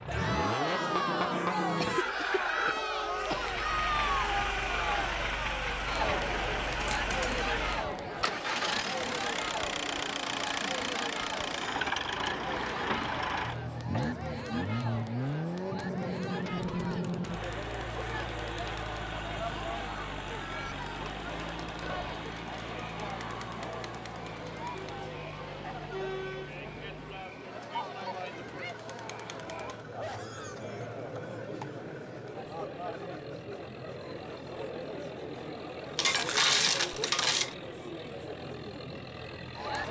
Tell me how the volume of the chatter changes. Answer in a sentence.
The loudness of the chatter goes down.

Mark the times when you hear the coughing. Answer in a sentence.
You can hear the coughing from 1.8 to 3.5 s, from 13.8 to 14.2 s and from 29.9 to 31.8 s.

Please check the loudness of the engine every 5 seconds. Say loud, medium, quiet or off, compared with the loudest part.
loud, loud, loud, loud, medium, quiet, quiet, quiet.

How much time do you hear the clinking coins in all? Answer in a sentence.
The clinking coins can be heard for 2 seconds in total.